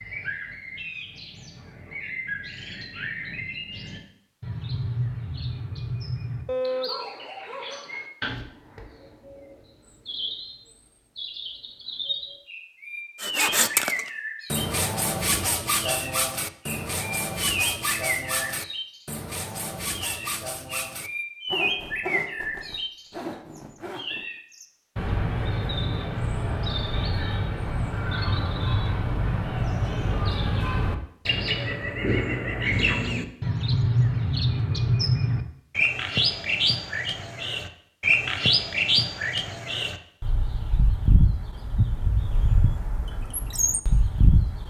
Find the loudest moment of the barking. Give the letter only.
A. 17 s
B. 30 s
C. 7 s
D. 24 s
C.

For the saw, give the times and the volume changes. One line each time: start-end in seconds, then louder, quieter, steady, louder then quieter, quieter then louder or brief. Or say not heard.
13.2-24.3 quieter.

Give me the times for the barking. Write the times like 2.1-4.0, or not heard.
6.5-8.0.